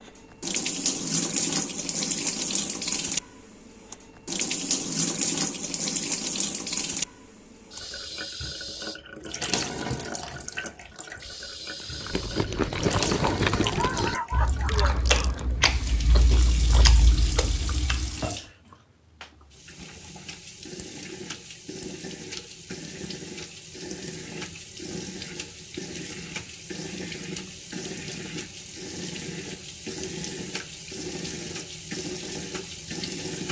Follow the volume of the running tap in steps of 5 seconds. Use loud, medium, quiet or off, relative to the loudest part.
loud, loud, medium, medium, medium, medium, medium.